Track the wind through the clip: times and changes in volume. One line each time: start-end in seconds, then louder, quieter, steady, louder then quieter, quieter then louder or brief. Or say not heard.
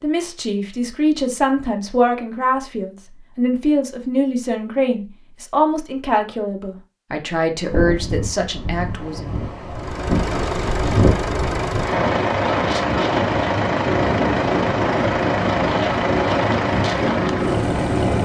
7.6-18.2 louder.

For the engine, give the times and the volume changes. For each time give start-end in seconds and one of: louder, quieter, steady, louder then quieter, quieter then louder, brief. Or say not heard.
9.7-18.2 steady.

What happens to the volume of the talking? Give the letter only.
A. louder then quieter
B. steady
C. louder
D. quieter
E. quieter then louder
B.